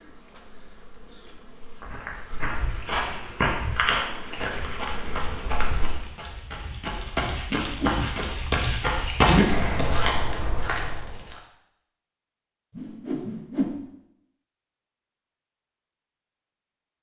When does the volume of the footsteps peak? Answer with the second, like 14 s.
9 s.